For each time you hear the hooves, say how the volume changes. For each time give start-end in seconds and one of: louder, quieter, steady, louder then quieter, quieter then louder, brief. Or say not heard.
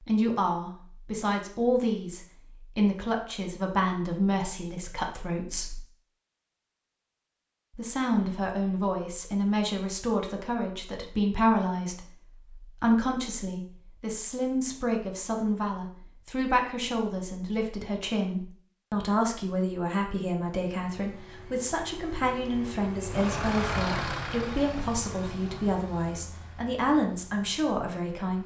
not heard.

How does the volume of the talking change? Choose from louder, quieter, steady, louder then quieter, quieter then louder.
steady.